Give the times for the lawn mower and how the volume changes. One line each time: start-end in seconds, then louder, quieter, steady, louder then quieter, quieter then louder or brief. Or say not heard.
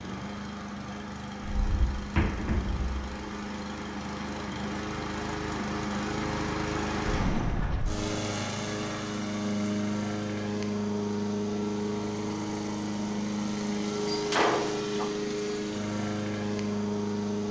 0.0-17.4 louder.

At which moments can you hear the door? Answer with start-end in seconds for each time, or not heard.
1.4-3.0, 7.0-8.1, 14.1-15.1.